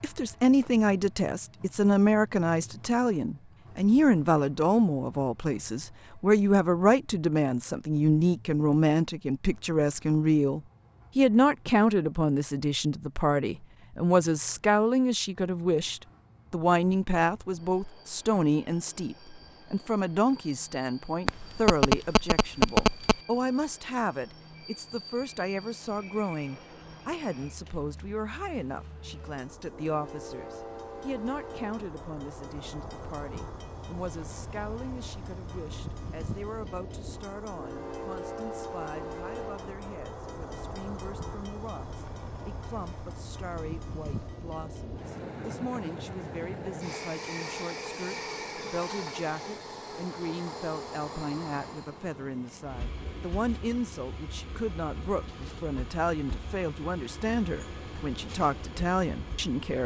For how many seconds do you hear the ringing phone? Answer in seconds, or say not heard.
2 s.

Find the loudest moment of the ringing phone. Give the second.
23 s.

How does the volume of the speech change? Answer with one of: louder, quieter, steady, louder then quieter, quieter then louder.
quieter then louder.